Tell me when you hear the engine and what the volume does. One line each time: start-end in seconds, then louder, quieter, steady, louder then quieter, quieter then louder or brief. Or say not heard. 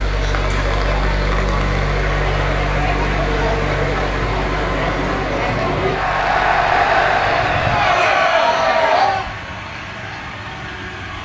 0.0-11.2 quieter.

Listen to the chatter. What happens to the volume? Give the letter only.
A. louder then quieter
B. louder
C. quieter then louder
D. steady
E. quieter
B.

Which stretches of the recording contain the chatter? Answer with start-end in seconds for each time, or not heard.
0.2-9.3.